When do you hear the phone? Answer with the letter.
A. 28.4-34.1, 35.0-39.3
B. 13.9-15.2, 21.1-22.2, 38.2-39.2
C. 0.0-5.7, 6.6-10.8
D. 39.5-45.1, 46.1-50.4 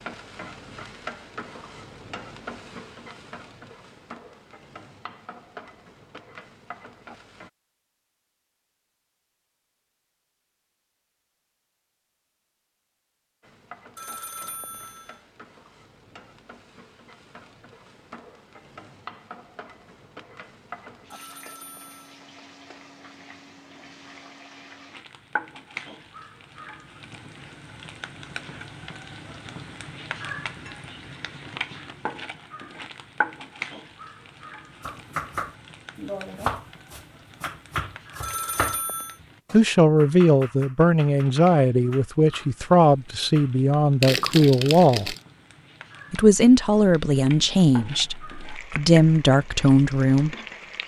B.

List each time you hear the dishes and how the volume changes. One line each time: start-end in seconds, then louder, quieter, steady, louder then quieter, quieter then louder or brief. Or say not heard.
not heard.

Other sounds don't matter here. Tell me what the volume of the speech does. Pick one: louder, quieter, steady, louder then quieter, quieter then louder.
steady.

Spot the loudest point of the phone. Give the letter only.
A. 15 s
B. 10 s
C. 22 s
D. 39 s
D.